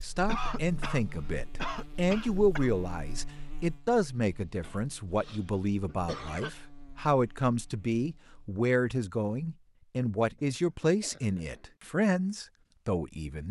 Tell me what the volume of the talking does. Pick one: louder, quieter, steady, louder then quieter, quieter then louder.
steady.